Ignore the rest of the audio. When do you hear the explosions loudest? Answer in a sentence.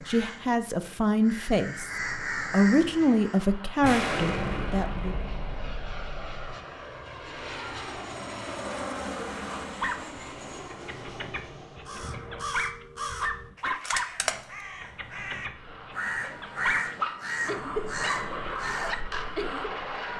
The volume of the explosions peaks at 4 seconds.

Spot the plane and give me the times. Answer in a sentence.
The plane can be heard from 2.0 to 12.4 s and from 15.4 to 20.1 s.